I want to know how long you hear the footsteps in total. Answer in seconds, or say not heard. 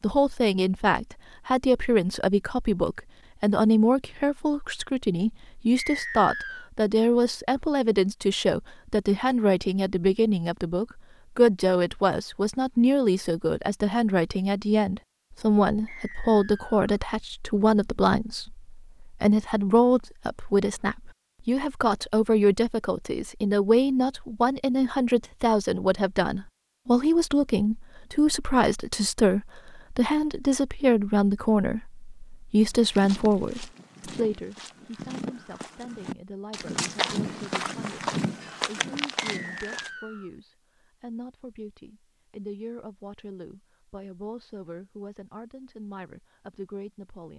7 s.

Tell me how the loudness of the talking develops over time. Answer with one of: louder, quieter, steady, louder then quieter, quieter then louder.
quieter.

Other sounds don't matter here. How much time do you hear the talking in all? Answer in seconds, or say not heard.
47 s.